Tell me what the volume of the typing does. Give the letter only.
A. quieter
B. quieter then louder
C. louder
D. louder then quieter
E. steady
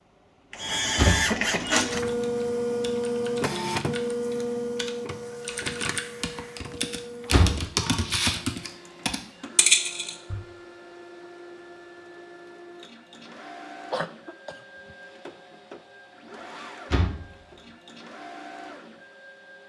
C.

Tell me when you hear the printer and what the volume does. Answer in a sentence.
The printer can be heard from 0.0 to 19.6 s, getting quieter.